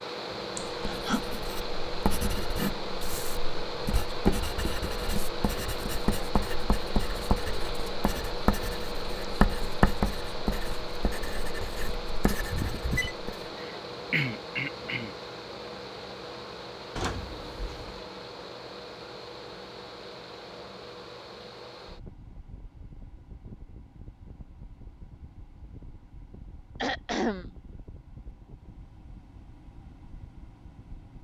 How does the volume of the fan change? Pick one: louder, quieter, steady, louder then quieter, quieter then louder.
quieter.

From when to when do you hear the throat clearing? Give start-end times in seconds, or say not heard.
0.7-1.2, 13.6-15.2, 26.8-27.4.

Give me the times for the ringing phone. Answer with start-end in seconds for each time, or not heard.
12.5-13.2, 16.9-18.0.